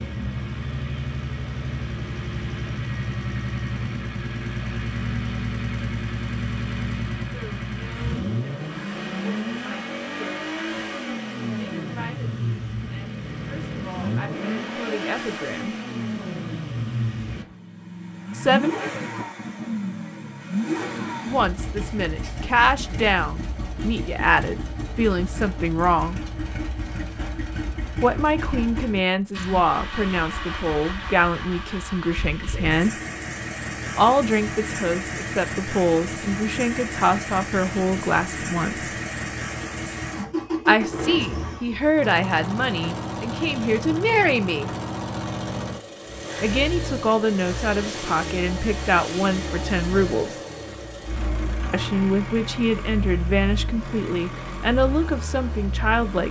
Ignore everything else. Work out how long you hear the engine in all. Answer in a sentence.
The engine can be heard for 56 seconds in total.